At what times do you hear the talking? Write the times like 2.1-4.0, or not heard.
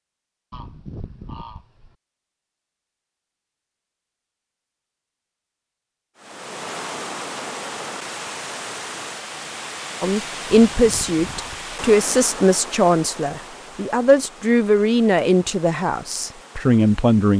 10.0-17.3.